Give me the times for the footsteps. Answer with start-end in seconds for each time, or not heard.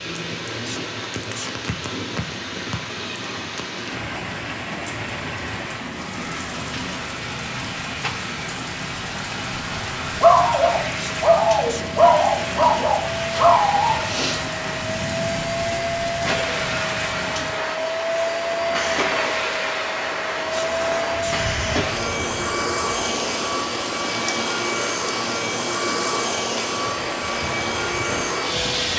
not heard.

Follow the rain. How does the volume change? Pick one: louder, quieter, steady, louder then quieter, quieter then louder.
steady.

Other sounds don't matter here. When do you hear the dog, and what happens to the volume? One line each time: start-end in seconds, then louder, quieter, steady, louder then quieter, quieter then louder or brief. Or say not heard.
9.7-15.8 quieter.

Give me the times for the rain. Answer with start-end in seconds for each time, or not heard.
0.0-28.9.